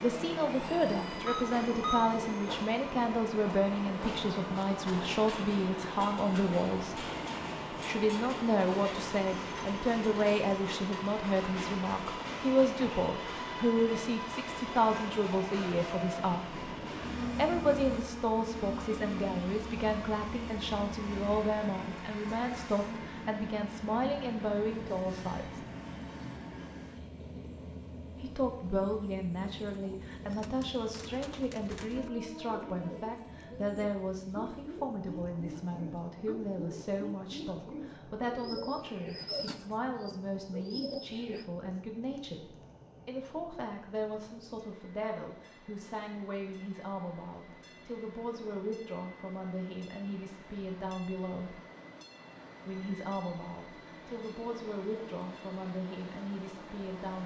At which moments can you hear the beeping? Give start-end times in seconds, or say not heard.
1.2-2.1.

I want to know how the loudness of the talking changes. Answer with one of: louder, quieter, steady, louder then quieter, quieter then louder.
quieter.